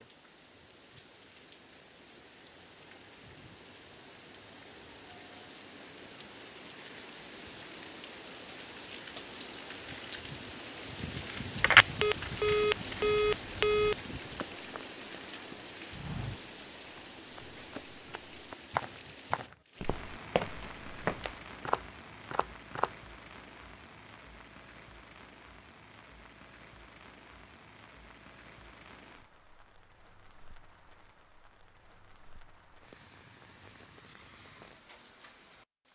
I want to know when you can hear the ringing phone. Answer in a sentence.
You can hear the ringing phone from 11.6 to 13.9 s.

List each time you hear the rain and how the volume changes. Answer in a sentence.
The rain can be heard from 0.0 to 35.9 s, getting louder then quieter.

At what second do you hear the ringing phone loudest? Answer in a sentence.
The loudest moment of the ringing phone is at 12 seconds.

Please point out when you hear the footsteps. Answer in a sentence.
The footsteps can be heard from 14.2 to 22.9 s.